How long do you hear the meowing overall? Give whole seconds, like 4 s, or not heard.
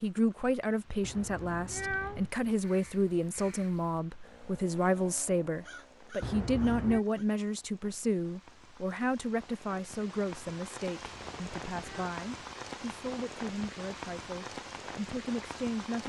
3 s.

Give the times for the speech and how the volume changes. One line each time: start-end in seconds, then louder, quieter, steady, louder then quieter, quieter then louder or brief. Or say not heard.
0.0-16.0 quieter.